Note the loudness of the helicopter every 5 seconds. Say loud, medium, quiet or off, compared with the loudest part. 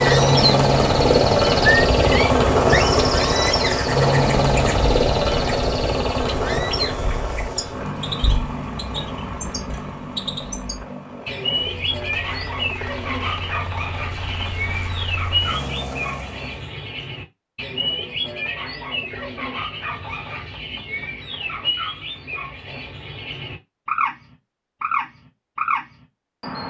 loud, medium, quiet, quiet, off, off.